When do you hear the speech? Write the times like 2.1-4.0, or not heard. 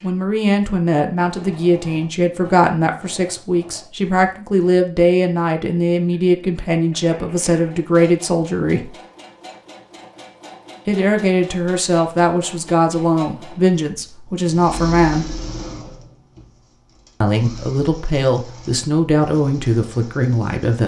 0.0-8.9, 10.8-15.3, 17.2-20.8.